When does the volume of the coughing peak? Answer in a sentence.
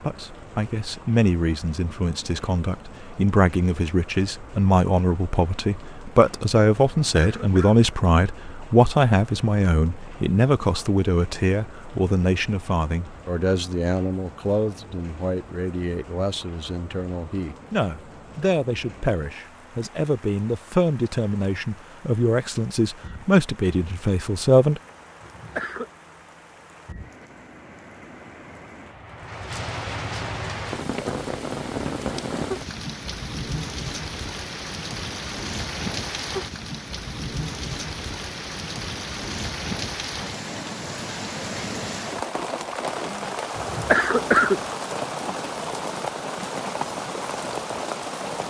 The volume of the coughing peaks at 44 seconds.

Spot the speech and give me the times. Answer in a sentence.
The speech can be heard from 0.0 to 24.8 s.